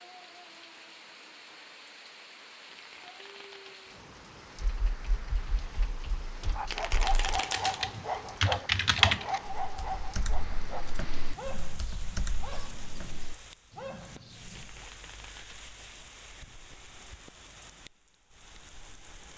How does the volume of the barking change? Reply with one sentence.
The volume of the barking goes down.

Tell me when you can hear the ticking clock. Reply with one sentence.
You can't hear the ticking clock here.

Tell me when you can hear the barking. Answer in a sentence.
You can hear the barking from 6.4 to 14.9 s.